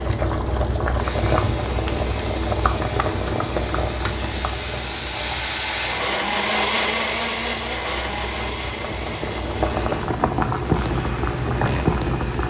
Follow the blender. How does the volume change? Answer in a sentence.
The volume of the blender goes up, then down.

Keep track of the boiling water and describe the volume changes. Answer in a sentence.
The volume of the boiling water goes down, then up.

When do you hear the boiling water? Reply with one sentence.
You can hear the boiling water from 0.0 to 12.4 s.